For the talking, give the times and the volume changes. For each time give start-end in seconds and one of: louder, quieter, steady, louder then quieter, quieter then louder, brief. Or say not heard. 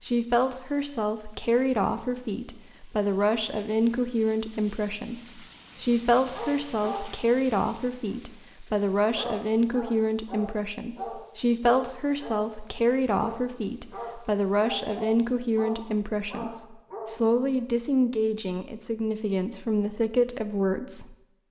0.0-21.1 steady.